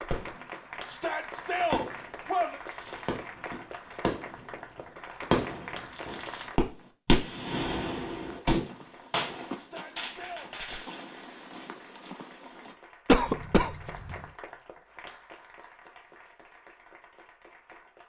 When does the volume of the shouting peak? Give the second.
2 s.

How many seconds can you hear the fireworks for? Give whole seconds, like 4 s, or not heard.
10 s.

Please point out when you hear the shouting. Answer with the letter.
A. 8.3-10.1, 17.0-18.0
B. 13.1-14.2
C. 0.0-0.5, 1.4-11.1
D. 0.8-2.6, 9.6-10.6
D.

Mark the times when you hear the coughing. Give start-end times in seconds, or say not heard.
13.1-14.2.